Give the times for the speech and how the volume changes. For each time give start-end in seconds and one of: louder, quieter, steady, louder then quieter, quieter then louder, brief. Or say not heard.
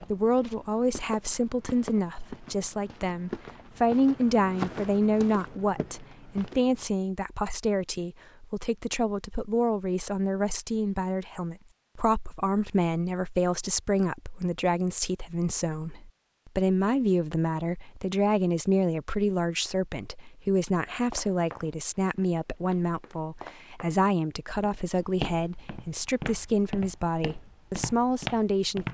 0.0-28.9 steady.